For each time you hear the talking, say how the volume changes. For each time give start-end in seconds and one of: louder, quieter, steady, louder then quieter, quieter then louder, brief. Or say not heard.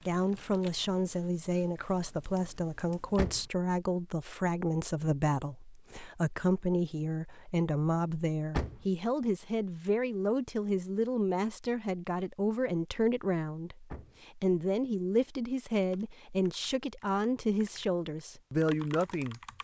0.1-19.4 steady.